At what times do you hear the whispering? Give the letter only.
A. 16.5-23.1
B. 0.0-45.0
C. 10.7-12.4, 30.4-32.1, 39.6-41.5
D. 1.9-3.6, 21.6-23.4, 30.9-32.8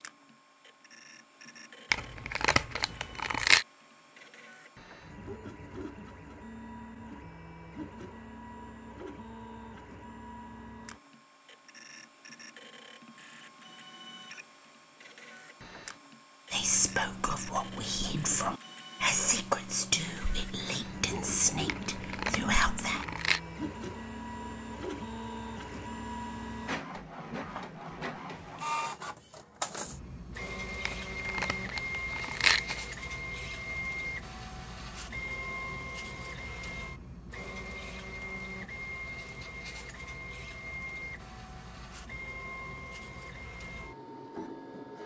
A.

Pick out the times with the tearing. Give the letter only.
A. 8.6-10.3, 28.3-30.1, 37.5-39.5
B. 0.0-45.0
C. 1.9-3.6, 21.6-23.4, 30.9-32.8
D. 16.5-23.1
C.